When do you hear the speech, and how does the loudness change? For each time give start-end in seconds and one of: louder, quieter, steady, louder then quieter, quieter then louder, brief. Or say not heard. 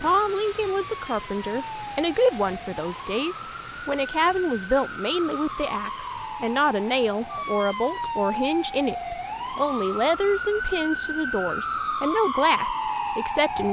0.0-13.6 steady.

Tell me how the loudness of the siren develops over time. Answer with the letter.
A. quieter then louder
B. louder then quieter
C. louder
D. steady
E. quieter
C.